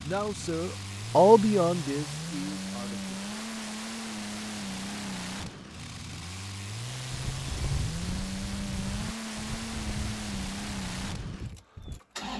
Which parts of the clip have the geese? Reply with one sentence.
The geese can be heard from 7.1 to 12.0 s.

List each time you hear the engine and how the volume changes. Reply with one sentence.
You can hear the engine from 0.0 to 12.3 s, at a steady volume.